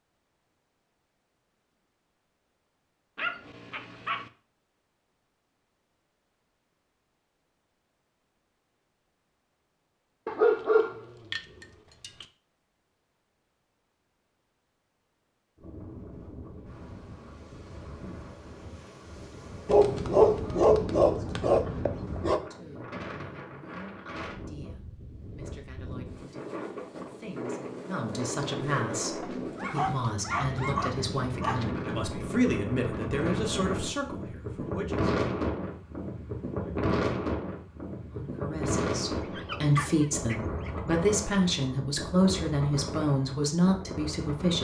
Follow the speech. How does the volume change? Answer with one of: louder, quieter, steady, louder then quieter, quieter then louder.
louder.